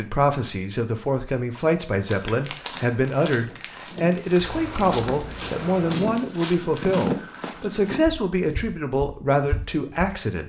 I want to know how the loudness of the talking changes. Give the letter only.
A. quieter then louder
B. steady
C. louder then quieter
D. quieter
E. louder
B.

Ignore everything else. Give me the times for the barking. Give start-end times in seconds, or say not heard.
not heard.